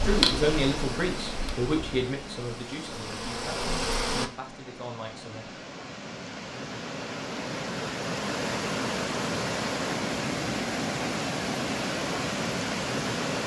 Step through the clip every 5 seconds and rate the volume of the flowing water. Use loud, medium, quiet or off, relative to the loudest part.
medium, loud, loud.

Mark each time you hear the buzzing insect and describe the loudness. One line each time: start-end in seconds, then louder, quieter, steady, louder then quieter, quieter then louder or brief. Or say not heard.
0.0-4.3 quieter then louder.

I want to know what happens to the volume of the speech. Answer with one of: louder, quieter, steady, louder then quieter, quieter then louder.
quieter.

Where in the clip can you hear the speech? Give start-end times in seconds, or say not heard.
0.0-5.6.